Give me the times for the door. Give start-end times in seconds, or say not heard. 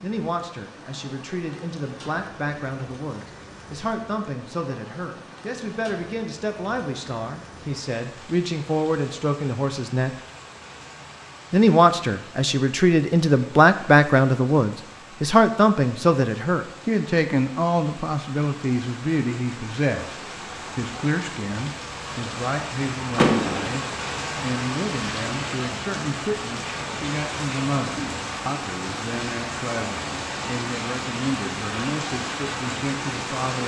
23.1-23.8.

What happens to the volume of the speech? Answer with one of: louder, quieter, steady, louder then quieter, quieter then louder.
louder then quieter.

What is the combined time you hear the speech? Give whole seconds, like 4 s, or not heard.
32 s.